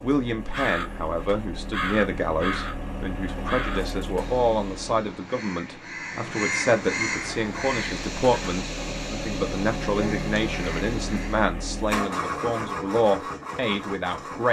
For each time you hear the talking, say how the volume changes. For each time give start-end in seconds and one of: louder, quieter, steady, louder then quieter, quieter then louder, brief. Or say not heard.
0.0-14.4 steady.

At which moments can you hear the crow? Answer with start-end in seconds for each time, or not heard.
0.5-11.5.